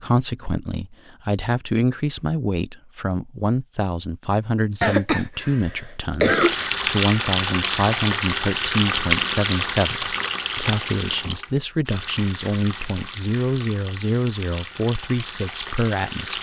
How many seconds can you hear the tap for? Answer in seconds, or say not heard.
10 s.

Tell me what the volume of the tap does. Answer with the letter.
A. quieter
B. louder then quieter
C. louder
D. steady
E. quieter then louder
A.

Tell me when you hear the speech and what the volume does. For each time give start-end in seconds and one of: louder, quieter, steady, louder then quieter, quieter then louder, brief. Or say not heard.
0.0-16.3 steady.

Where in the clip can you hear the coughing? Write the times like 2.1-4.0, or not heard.
4.8-6.7.